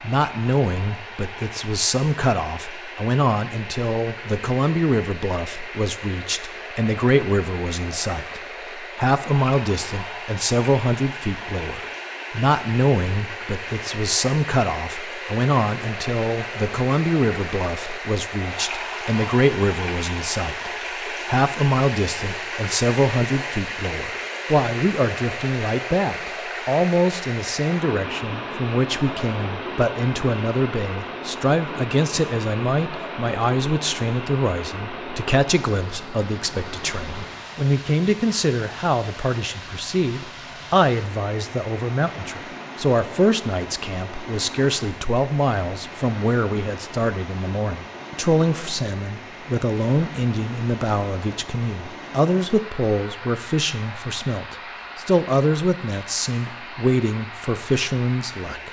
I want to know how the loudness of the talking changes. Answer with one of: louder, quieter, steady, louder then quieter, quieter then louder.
steady.